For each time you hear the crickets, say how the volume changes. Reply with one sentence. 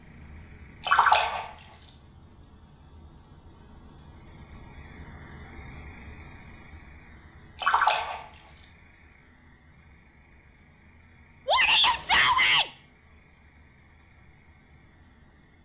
You can hear the crickets from 0.0 to 15.6 s, getting louder then quieter.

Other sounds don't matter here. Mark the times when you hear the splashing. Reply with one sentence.
You can hear the splashing from 0.8 to 1.9 s, from 7.5 to 8.7 s and from 11.8 to 12.4 s.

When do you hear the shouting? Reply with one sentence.
The shouting can be heard from 11.4 to 12.7 s.